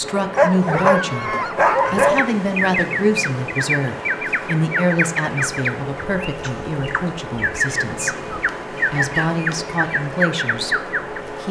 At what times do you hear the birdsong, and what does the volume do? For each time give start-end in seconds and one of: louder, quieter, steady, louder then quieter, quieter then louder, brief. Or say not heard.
2.0-11.3 quieter then louder.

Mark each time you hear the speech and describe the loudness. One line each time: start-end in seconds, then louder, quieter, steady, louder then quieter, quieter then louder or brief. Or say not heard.
0.0-8.2 quieter
8.9-10.8 brief.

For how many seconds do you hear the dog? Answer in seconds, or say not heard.
3 s.